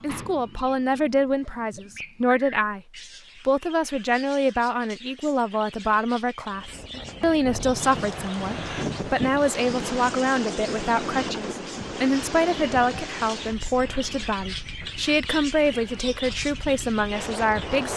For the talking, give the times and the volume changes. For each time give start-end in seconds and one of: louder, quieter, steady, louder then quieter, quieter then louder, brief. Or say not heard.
0.0-2.8 brief
3.4-17.9 steady.